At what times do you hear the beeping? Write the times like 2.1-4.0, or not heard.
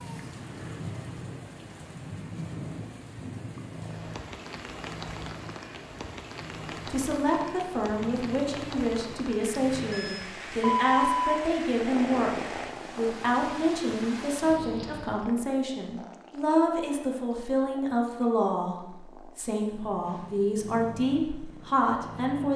9.9-11.4.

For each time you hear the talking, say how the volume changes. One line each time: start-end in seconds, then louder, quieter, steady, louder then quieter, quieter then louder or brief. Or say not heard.
6.8-22.5 steady.